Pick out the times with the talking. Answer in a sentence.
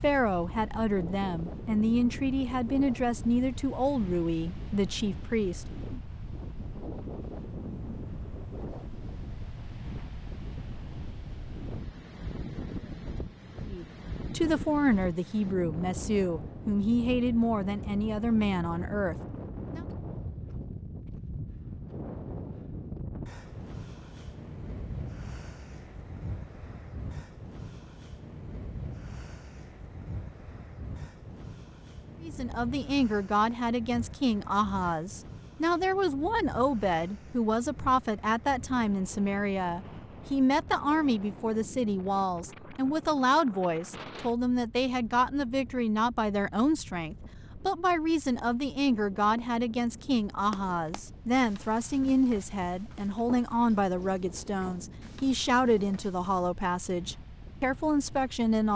The talking can be heard from 0.0 to 6.0 s, from 13.7 to 19.9 s and from 32.2 to 58.7 s.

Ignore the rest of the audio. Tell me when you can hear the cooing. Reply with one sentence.
The cooing can't be heard in this clip.